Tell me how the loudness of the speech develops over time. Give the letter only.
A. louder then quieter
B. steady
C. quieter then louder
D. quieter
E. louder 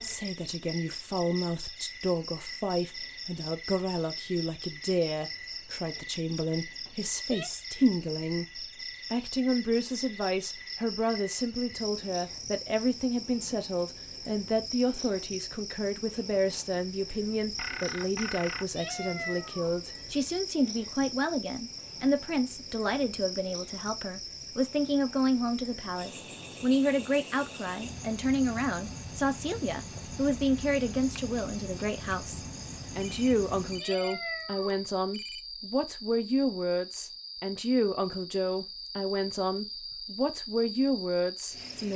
B.